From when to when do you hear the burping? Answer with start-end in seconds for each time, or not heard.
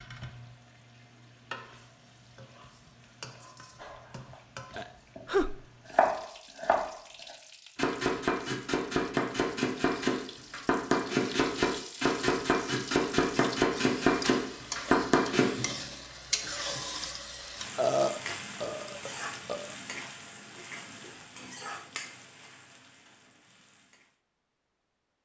4.8-5.7, 17.8-19.8.